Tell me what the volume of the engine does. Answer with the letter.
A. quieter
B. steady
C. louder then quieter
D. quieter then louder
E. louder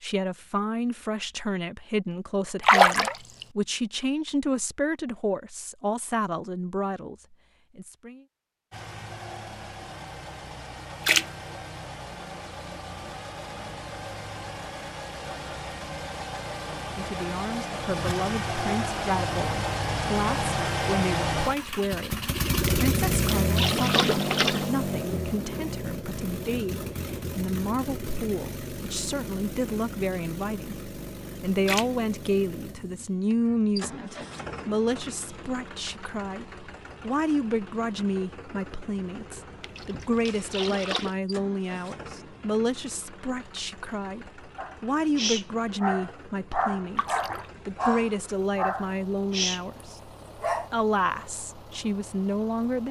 C.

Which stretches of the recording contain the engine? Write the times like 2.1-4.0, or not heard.
8.7-52.8.